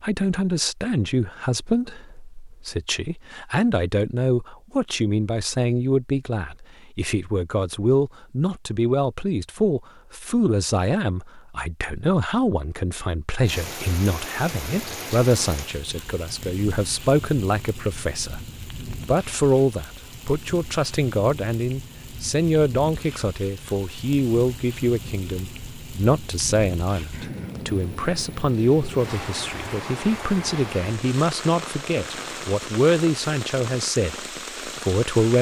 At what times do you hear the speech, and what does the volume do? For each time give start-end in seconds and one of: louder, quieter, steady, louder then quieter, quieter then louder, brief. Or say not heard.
0.0-35.3 steady.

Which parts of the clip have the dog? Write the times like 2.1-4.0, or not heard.
not heard.